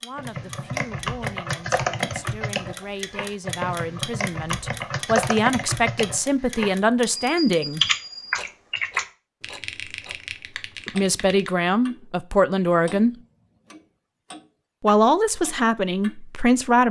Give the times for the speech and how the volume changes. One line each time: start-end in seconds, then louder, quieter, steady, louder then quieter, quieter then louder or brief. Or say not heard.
0.0-7.8 louder
10.8-13.2 brief
14.8-16.8 brief.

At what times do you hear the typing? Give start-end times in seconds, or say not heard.
0.1-11.5.